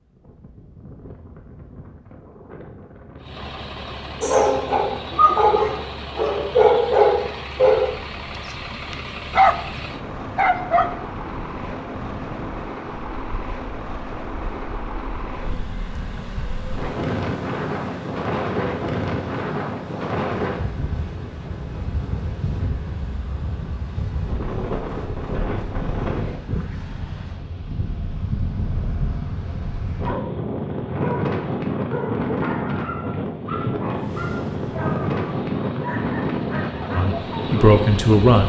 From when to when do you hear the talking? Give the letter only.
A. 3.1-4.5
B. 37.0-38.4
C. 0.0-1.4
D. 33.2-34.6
B.